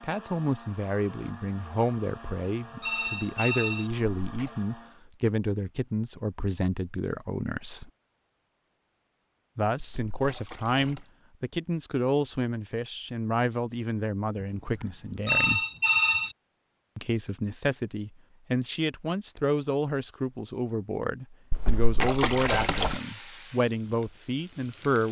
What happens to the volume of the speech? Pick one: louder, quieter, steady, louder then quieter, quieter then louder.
steady.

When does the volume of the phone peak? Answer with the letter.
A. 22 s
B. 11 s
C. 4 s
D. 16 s
D.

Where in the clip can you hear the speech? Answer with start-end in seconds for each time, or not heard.
0.0-7.9, 9.6-15.6, 16.9-25.0.